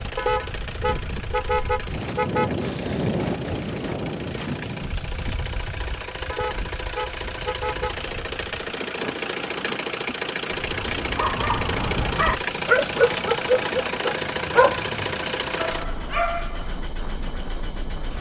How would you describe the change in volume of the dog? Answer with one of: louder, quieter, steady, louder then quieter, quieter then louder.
louder then quieter.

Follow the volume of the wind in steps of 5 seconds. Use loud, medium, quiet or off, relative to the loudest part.
loud, medium, medium, medium.